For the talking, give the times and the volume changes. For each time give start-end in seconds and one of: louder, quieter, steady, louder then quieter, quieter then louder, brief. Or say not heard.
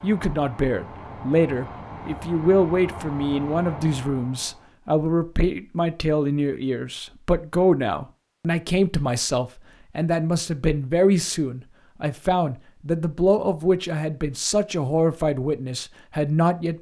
0.0-16.7 steady.